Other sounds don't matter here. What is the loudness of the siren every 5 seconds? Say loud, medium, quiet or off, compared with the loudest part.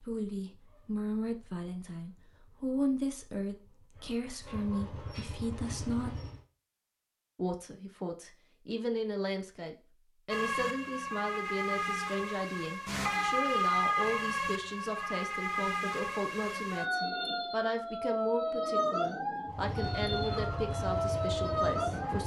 off, off, loud, loud, loud.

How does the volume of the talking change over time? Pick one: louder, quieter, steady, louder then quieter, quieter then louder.
steady.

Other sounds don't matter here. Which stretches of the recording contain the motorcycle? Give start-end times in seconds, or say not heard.
0.1-6.5, 19.4-22.2.